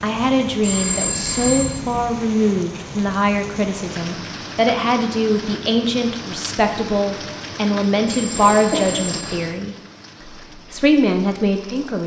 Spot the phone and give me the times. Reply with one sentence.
You can hear the phone from 0.6 to 1.7 s and from 8.1 to 9.4 s.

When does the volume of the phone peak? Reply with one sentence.
The loudest moment of the phone is at 1 second.